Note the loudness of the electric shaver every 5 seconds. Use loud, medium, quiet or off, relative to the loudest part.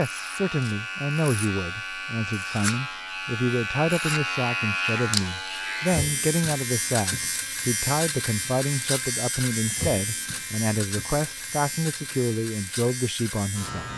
loud, loud, medium.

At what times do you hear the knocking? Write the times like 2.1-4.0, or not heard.
not heard.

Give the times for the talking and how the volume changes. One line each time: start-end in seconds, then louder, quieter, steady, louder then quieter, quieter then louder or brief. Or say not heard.
0.0-13.9 steady.